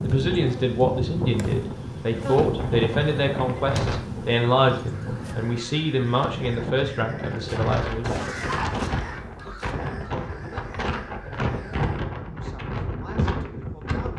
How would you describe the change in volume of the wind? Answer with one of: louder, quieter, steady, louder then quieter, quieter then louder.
steady.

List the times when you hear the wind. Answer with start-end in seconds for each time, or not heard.
0.0-14.1.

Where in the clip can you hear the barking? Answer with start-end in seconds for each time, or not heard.
8.0-8.8.